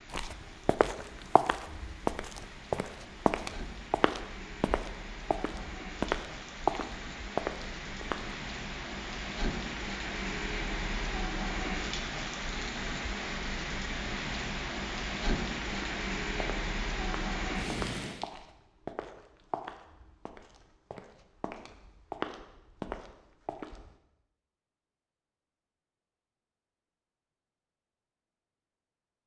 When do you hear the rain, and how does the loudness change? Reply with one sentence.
You can hear the rain from 0.0 to 18.2 s, getting louder.